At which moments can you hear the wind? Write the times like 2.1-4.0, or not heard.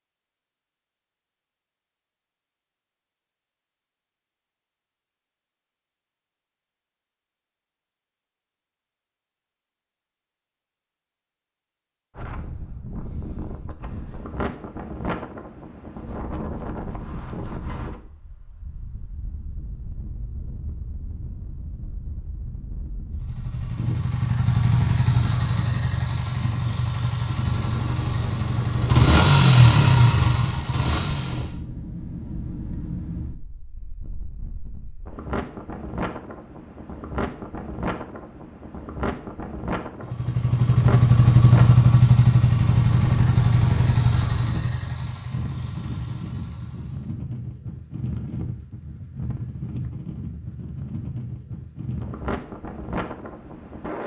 12.2-54.0.